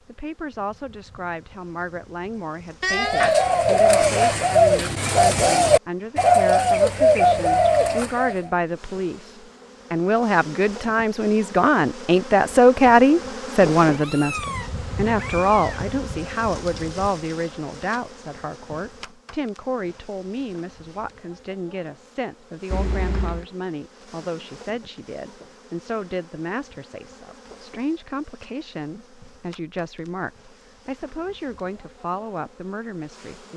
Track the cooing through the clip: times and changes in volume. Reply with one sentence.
You can hear the cooing from 2.9 to 8.5 s, at a steady volume.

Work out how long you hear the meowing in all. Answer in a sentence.
You can hear the meowing for 4 seconds altogether.